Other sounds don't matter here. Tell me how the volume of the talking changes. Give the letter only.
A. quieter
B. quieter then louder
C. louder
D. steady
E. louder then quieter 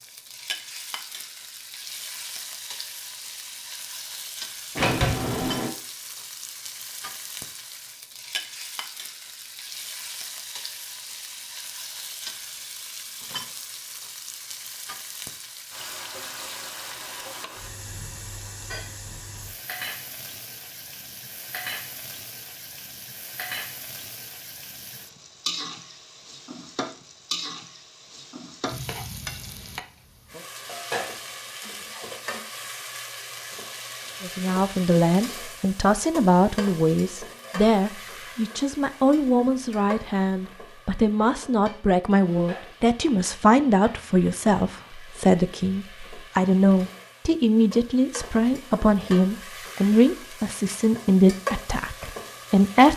D.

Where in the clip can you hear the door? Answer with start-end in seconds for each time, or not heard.
4.8-5.7.